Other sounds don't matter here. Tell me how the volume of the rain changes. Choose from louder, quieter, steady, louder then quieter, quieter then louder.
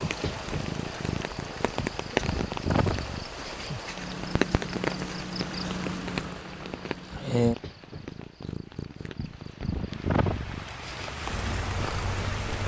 quieter then louder.